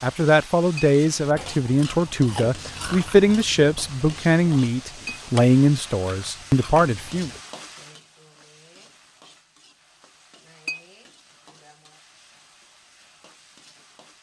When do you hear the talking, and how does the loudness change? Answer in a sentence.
The talking can be heard from 0.0 to 7.3 s, at a steady volume.